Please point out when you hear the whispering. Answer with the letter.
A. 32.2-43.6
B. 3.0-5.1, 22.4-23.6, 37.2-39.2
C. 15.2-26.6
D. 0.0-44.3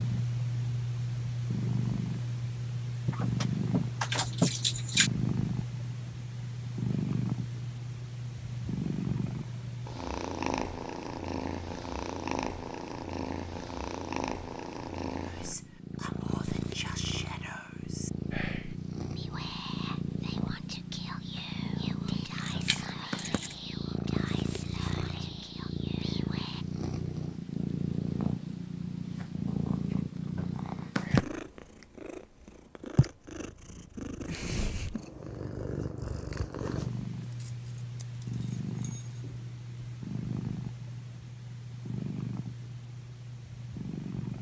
C.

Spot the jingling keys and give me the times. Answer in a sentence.
You can hear the jingling keys from 3.0 to 5.1 s, from 22.4 to 23.6 s and from 37.2 to 39.2 s.